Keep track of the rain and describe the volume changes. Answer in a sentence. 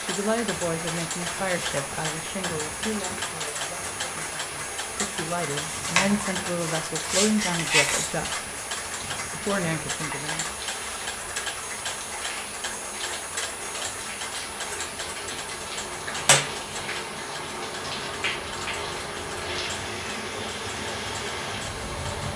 The loudness of the rain goes up.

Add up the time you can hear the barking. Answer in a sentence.
The barking can't be heard in this clip.